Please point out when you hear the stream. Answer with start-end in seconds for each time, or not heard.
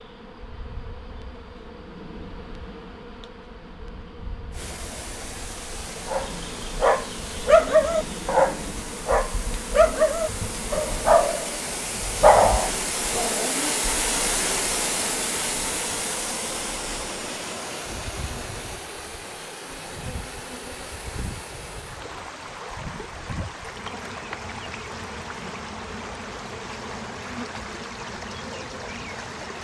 4.5-29.5.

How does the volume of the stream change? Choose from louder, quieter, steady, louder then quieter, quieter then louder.
louder then quieter.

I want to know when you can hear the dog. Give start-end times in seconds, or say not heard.
6.1-13.7.